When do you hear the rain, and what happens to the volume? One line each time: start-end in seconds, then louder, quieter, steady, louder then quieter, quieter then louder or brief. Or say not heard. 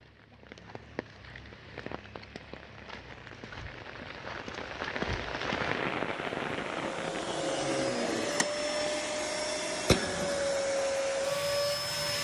0.0-8.9 louder then quieter.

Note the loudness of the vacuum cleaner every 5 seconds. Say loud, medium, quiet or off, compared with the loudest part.
off, loud, loud.